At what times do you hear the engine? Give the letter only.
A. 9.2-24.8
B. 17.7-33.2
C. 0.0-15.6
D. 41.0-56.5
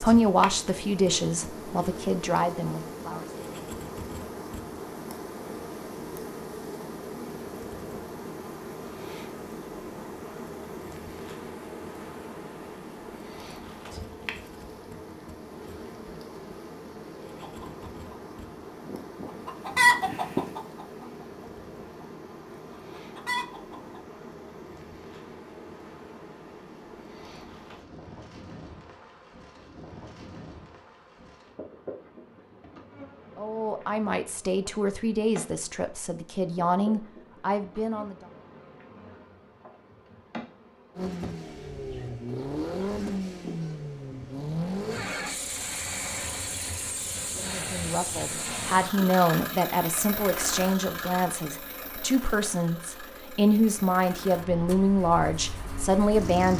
D.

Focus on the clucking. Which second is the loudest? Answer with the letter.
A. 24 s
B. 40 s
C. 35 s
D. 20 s
D.